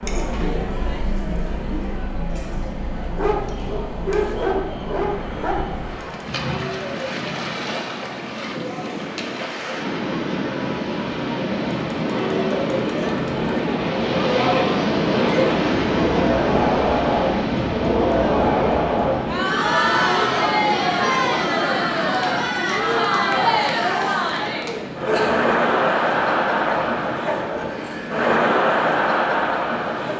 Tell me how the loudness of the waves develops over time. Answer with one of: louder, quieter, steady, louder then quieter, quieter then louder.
louder then quieter.